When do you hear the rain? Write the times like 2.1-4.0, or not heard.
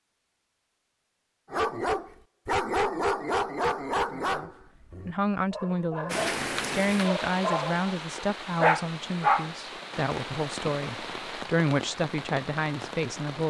6.1-13.4.